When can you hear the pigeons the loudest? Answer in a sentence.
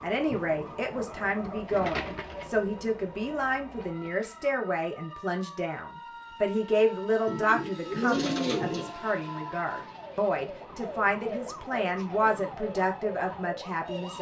The volume of the pigeons peaks at 8 seconds.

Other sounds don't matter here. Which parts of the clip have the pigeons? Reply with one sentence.
You can hear the pigeons from 0.9 to 2.5 s and from 7.2 to 8.9 s.